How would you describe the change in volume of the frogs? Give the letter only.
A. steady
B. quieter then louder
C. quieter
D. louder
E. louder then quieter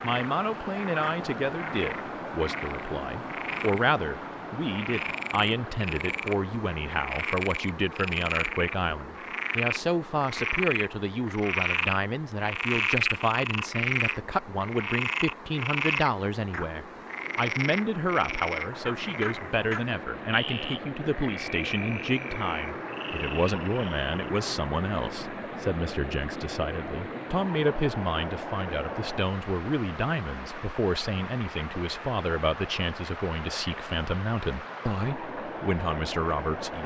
E.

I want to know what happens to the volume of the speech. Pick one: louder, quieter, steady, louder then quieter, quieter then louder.
steady.